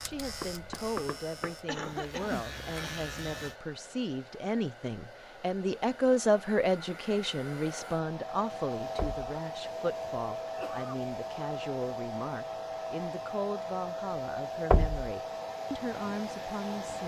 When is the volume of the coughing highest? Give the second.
2 s.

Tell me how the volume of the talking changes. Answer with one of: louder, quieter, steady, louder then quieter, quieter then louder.
louder then quieter.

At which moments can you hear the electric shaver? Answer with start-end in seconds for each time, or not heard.
0.0-3.5.